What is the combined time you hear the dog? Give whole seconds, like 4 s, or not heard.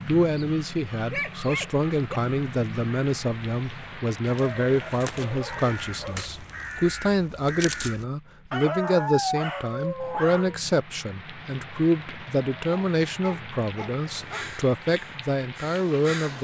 7 s.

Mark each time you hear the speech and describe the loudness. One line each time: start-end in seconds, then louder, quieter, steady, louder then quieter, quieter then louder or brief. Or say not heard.
0.1-16.3 steady.